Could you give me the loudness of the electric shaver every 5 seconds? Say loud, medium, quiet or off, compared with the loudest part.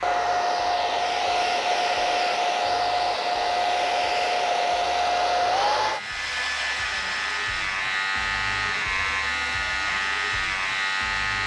medium, loud, loud.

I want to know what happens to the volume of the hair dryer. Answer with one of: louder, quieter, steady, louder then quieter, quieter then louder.
quieter.